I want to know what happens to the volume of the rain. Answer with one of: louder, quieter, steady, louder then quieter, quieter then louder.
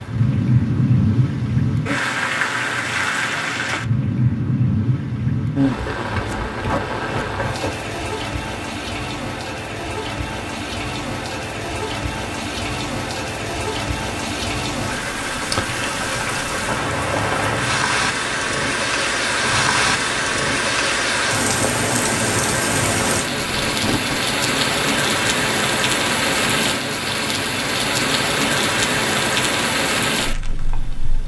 quieter then louder.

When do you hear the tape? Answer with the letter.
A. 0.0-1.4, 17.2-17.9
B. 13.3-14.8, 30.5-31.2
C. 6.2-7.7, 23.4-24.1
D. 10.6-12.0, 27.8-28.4
C.